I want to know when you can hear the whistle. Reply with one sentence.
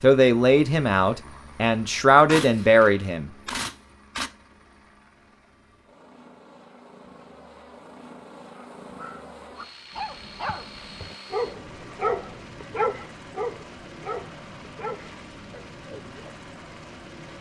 The whistle can't be heard in this clip.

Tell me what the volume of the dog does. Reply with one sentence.
The volume of the dog goes up, then down.